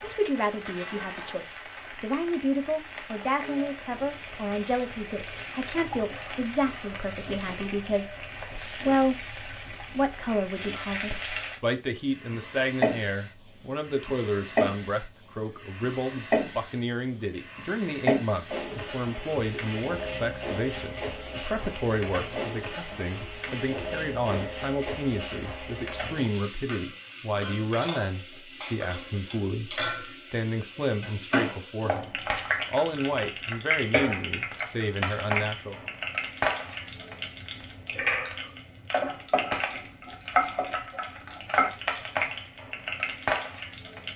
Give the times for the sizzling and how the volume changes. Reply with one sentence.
The sizzling can be heard from 0.0 to 44.1 s, getting louder.